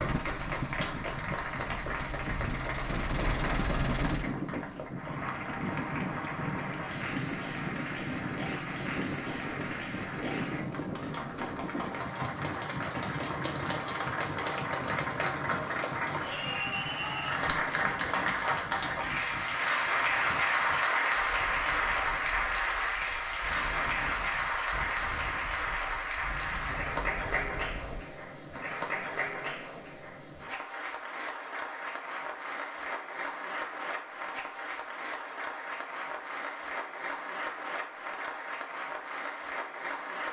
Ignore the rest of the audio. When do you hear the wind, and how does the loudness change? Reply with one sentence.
The wind can be heard from 0.0 to 28.1 s, getting quieter.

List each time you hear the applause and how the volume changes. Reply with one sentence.
The applause can be heard from 0.0 to 40.2 s, getting louder then quieter.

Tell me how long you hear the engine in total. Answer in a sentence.
The engine can be heard for 4 seconds in total.